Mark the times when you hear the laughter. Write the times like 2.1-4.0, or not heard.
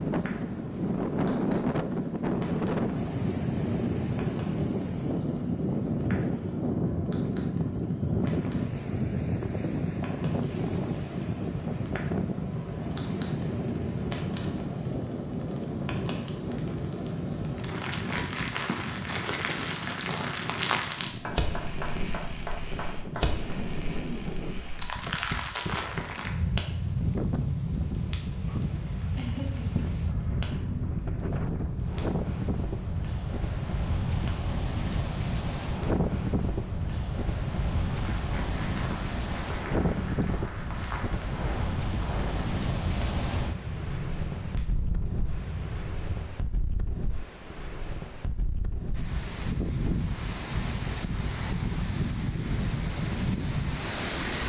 29.1-30.4.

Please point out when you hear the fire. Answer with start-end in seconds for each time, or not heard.
0.0-46.2.